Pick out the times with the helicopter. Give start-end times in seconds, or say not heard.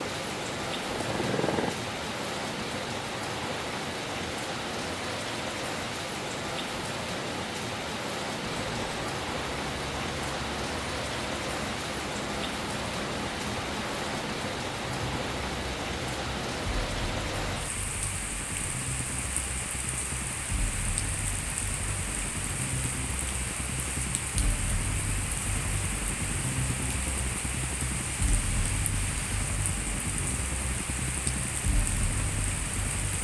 0.0-1.8, 8.4-33.1.